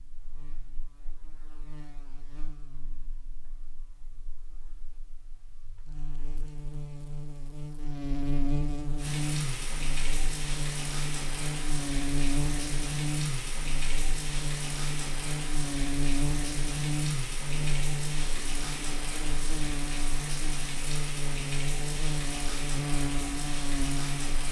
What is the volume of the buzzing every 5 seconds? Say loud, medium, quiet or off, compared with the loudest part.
quiet, loud, loud, loud, loud.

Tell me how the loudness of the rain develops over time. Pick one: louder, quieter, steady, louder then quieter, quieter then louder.
steady.